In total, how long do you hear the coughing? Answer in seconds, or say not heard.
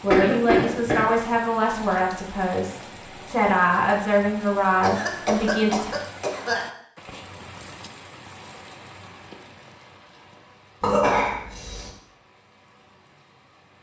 4 s.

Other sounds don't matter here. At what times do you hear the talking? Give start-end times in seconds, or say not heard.
0.0-5.9.